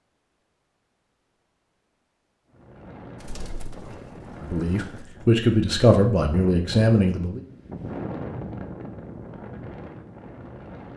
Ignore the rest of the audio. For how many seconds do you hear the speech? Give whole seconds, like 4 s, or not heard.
3 s.